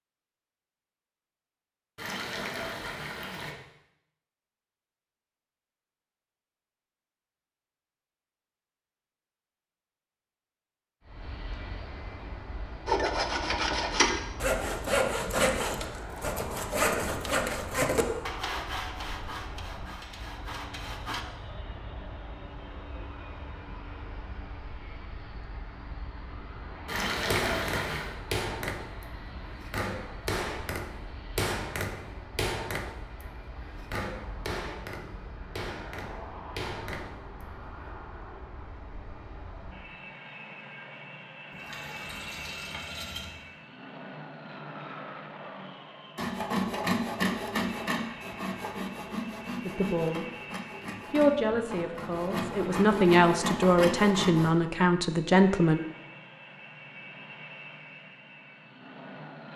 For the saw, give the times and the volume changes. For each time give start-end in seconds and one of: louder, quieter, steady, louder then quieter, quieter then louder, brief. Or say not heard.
12.8-21.2 quieter
46.1-54.5 quieter then louder.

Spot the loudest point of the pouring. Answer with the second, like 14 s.
27 s.